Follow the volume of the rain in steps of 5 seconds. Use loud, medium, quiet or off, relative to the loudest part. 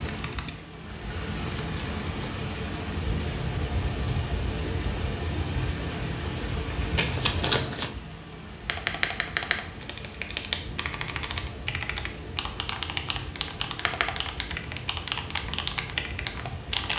loud, loud, medium, medium.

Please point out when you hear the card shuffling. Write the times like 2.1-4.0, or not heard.
7.0-8.0.